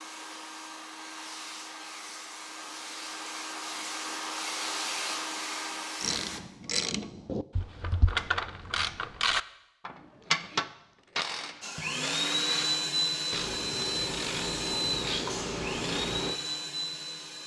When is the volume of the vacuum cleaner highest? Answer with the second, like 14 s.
13 s.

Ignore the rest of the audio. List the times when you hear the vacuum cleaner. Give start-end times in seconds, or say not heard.
0.0-6.4, 11.6-17.4.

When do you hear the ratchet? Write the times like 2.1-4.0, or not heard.
6.0-16.4.